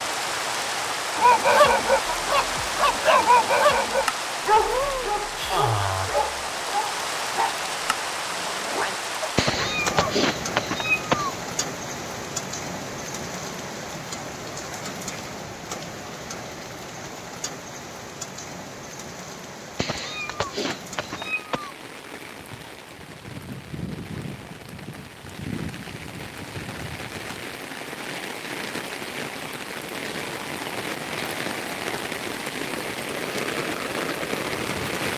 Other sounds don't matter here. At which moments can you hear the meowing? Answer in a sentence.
The meowing can be heard from 9.3 to 11.3 s and from 19.8 to 21.8 s.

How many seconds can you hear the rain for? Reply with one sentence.
You can hear the rain for 35 seconds altogether.